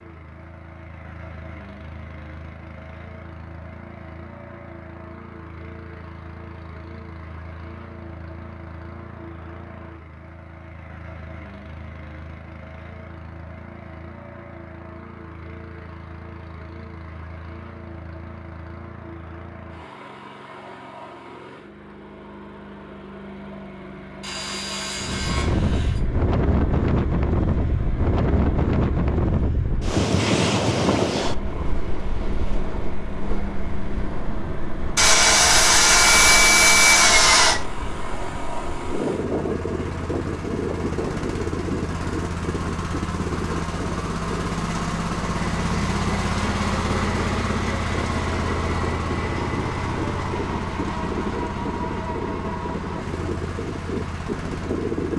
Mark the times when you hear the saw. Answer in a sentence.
The saw can be heard from 24.2 to 26.0 s and from 35.0 to 37.6 s.